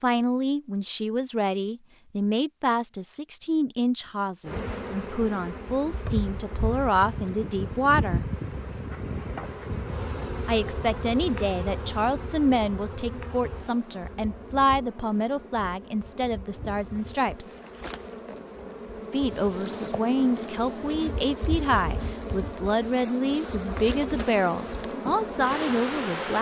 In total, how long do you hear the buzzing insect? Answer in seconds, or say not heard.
22 s.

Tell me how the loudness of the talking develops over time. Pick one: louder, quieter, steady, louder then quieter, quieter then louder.
steady.